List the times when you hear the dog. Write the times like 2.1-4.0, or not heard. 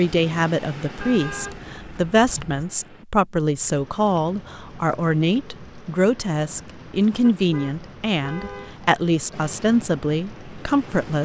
not heard.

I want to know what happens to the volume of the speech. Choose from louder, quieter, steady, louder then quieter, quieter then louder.
steady.